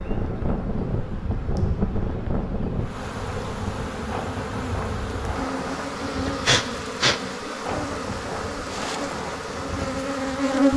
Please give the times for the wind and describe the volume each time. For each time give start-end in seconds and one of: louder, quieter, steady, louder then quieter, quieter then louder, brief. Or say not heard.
0.0-10.7 quieter.